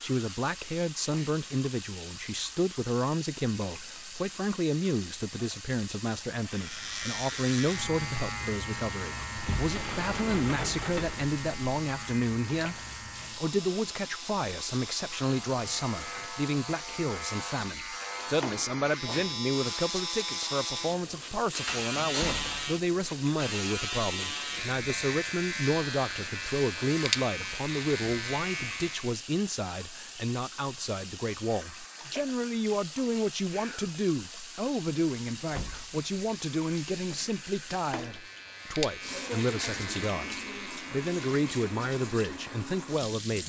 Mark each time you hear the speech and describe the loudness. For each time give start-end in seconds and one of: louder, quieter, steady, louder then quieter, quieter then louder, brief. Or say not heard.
0.0-43.4 steady.